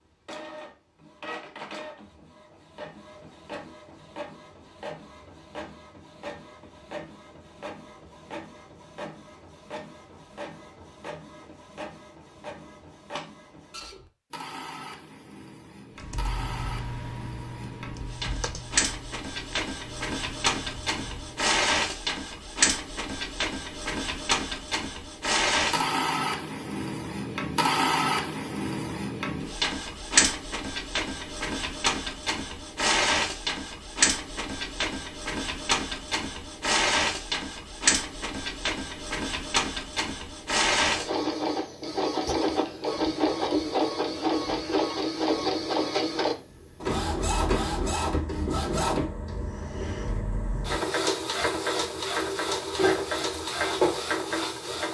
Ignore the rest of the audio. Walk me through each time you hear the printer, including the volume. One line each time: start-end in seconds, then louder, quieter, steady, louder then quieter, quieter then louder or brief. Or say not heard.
0.1-54.8 louder.